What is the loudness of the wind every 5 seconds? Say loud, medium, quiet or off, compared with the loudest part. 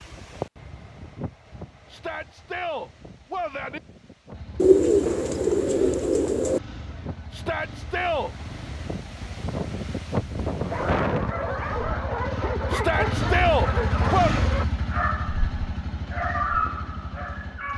quiet, medium, loud, off.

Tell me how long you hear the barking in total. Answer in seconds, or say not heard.
7 s.